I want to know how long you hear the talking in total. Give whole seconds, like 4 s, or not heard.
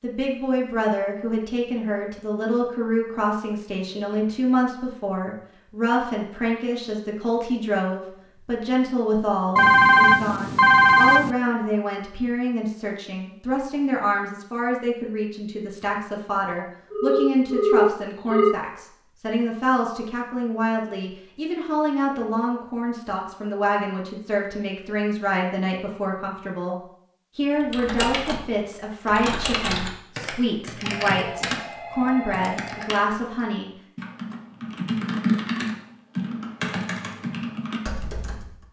33 s.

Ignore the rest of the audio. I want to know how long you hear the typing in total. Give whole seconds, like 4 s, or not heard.
11 s.